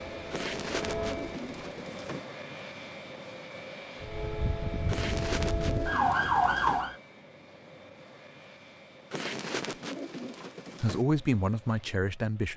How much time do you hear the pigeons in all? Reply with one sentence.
The pigeons can be heard for 6 seconds in total.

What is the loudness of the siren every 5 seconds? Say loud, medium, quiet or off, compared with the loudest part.
medium, loud, off.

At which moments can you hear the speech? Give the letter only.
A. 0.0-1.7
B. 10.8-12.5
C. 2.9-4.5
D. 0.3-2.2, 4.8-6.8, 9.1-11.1
B.